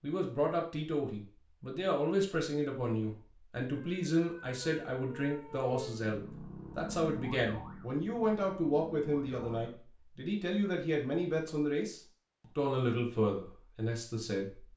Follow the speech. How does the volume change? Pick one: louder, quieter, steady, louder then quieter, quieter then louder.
steady.